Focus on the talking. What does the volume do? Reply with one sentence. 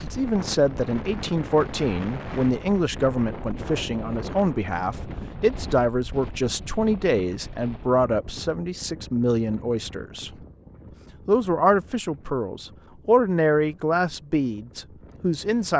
The volume of the talking stays about the same.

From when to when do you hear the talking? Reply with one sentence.
You can hear the talking from 0.0 to 10.3 s and from 11.2 to 15.7 s.